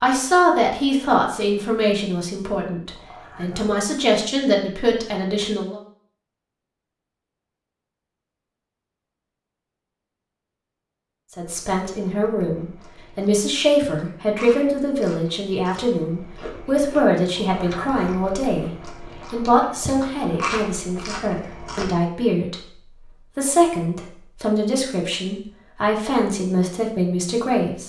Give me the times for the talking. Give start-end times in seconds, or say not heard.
0.0-5.8, 11.3-27.8.